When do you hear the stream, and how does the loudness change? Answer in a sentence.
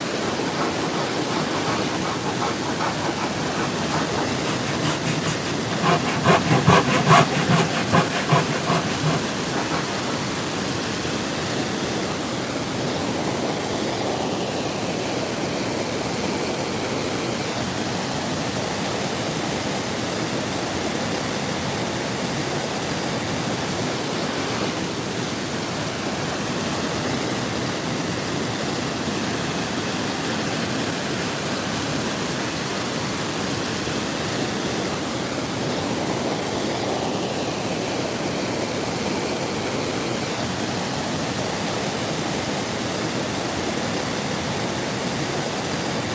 You can hear the stream from 0.0 to 46.0 s, at a steady volume.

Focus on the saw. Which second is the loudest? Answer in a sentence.
The volume of the saw peaks at 7 seconds.